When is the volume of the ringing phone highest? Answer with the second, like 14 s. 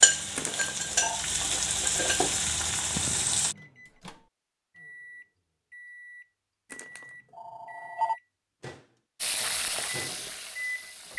8 s.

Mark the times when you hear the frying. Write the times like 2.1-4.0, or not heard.
0.0-3.5, 9.2-11.1.